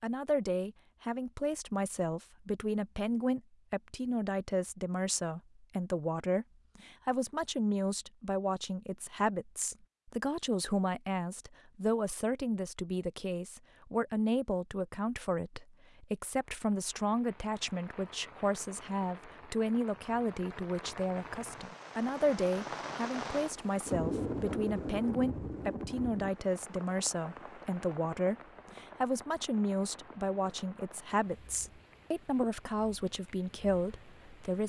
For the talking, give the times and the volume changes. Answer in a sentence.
You can hear the talking from 0.0 to 34.6 s, at a steady volume.